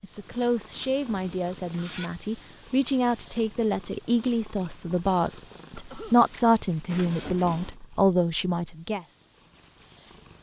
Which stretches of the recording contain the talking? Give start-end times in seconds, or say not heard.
0.0-9.1.